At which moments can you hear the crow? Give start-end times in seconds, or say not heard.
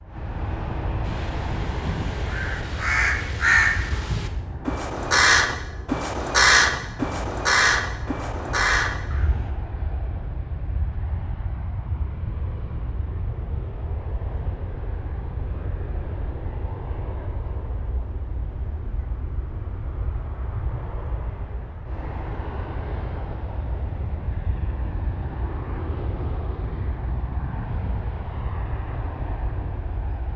1.0-9.6.